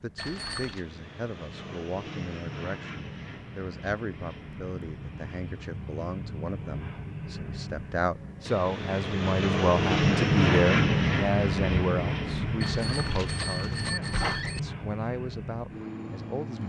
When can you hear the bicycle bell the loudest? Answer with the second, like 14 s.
14 s.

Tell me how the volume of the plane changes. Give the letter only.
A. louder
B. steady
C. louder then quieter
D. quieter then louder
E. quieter
C.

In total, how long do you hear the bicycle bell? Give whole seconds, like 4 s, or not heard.
3 s.